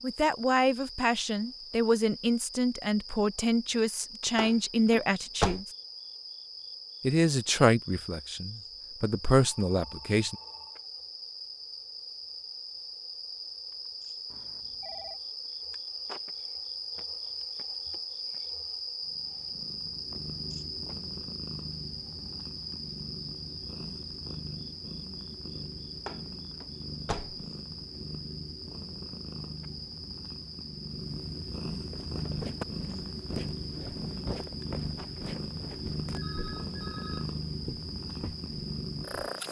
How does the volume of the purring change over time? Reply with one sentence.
The volume of the purring goes up.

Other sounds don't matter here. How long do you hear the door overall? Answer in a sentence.
You can hear the door for 3 seconds altogether.